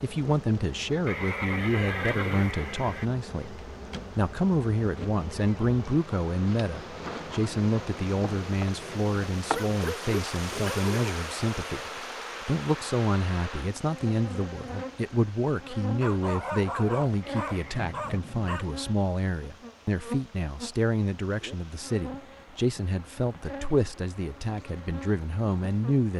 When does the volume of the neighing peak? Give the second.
2 s.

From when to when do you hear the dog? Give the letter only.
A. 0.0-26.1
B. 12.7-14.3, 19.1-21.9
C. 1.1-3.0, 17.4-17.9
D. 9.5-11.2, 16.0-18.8
D.